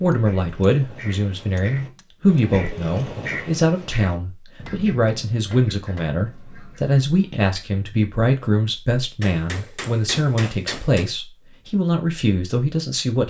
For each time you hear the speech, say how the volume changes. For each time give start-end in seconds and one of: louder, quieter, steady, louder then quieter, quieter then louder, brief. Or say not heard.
0.0-13.2 steady.